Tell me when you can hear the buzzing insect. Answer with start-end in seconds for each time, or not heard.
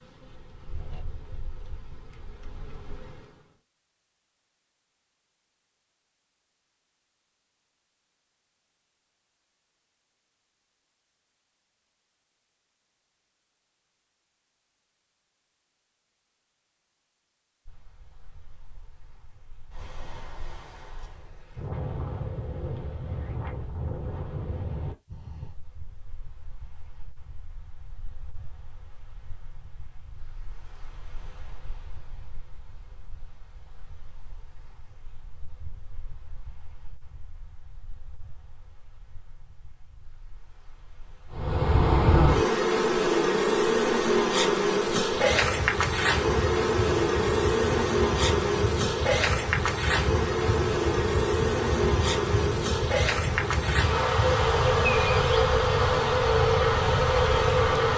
0.0-3.4, 41.3-57.9.